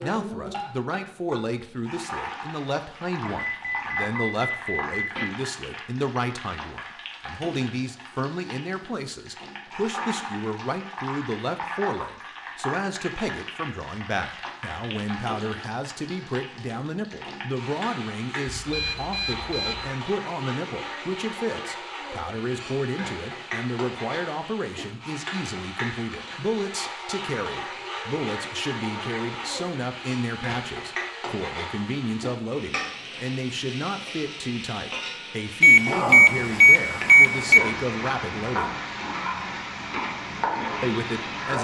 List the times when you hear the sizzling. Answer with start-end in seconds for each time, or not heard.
0.0-41.6.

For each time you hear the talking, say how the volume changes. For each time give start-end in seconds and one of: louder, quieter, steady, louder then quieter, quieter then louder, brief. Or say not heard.
0.0-38.8 steady
40.8-41.6 brief.